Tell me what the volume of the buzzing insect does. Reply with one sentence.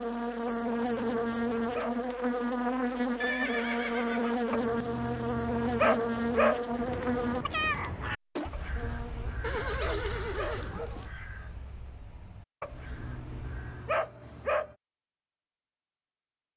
The volume of the buzzing insect stays about the same.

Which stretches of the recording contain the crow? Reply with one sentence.
You can hear the crow from 6.7 to 13.9 s.